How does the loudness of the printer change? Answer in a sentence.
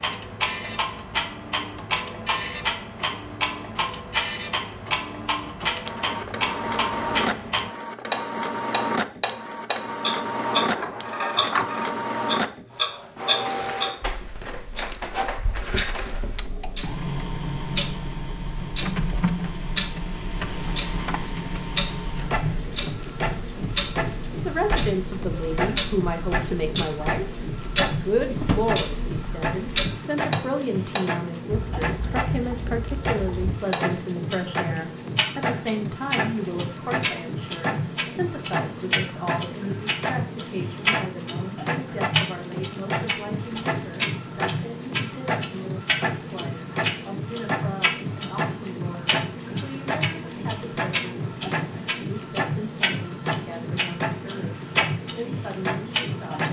The volume of the printer stays about the same.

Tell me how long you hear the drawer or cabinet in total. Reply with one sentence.
The drawer or cabinet can be heard for 2 seconds in total.